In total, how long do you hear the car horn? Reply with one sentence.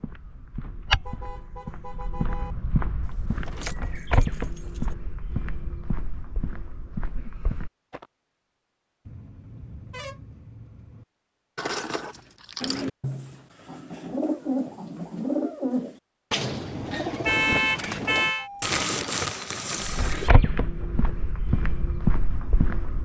You can hear the car horn for 5 seconds altogether.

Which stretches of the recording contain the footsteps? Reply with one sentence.
The footsteps can be heard from 0.0 to 8.1 s and from 19.8 to 23.0 s.